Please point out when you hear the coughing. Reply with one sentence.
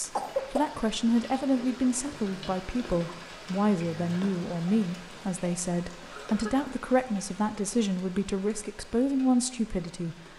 You can hear the coughing from 0.0 to 0.7 s and from 6.0 to 6.8 s.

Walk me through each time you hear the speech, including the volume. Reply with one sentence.
The speech can be heard from 0.0 to 10.2 s, at a steady volume.